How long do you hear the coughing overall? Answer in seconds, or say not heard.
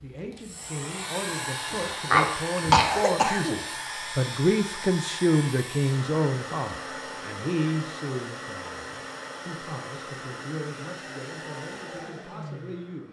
2 s.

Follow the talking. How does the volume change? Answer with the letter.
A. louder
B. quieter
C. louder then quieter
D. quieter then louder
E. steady
C.